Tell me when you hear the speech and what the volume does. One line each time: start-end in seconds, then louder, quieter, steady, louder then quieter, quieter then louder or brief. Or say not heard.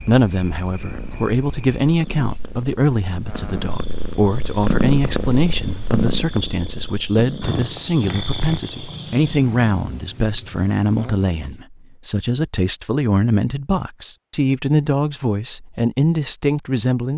0.1-17.1 steady.